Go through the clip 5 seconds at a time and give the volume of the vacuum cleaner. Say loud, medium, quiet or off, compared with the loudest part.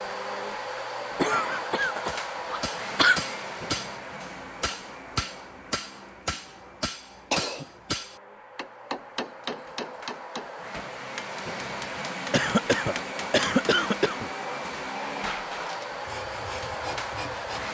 loud, quiet, loud, loud.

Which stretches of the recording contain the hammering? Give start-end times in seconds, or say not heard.
2.0-13.9.